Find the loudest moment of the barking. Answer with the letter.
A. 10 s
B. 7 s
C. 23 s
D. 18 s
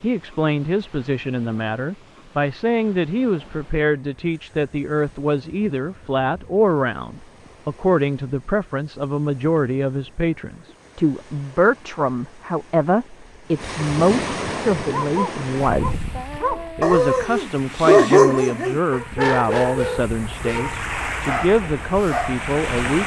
D.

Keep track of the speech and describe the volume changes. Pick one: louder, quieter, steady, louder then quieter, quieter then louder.
steady.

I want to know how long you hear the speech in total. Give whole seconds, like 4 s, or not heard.
22 s.